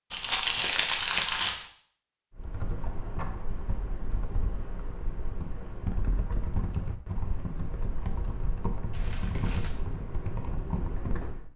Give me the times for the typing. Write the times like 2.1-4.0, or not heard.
2.4-11.5.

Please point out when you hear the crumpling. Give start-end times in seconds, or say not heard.
0.1-1.6, 8.9-9.8.